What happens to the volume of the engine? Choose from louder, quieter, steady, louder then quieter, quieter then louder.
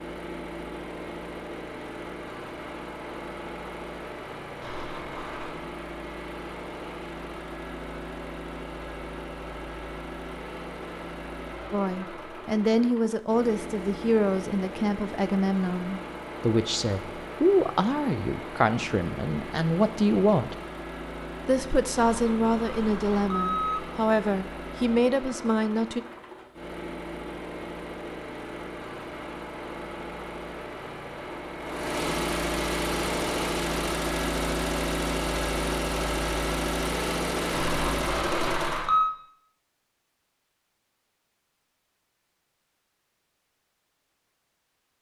louder.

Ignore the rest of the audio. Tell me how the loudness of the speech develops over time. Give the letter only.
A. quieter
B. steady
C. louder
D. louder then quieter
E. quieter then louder
B.